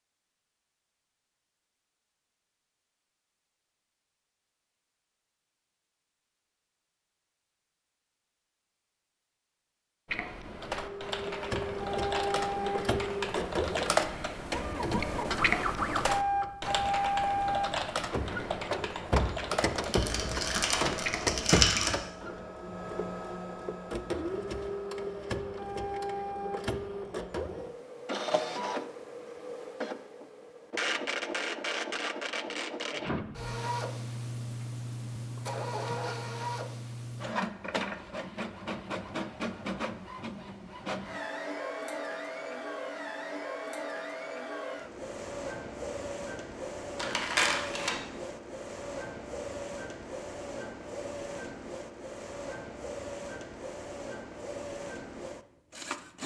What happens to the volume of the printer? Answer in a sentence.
The loudness of the printer goes down.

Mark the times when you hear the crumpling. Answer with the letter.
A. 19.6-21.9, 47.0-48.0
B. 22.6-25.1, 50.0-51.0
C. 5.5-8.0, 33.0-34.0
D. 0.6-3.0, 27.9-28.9
A.